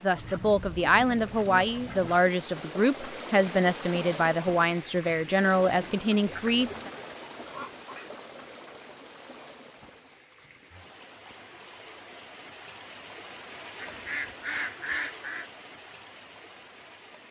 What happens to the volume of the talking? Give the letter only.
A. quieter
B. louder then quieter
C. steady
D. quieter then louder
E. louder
C.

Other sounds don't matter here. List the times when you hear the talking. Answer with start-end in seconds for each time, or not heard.
0.0-6.9.